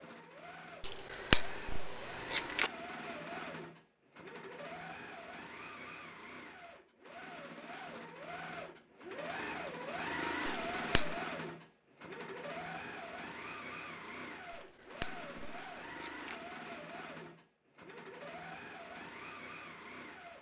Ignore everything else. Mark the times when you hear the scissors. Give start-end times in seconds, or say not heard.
0.8-2.7, 10.4-11.2, 14.5-16.4.